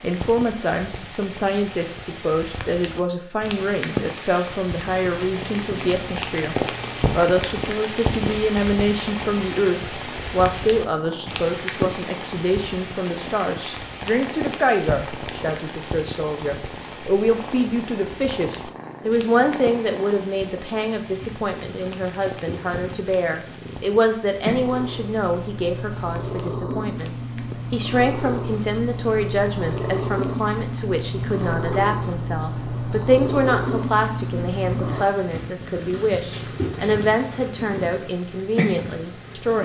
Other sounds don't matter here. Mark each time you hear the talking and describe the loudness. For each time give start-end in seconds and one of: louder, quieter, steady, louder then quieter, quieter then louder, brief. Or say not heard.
0.0-39.6 steady.